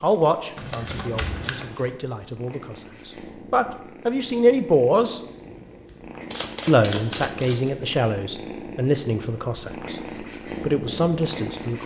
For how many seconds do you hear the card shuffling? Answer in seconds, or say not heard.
3 s.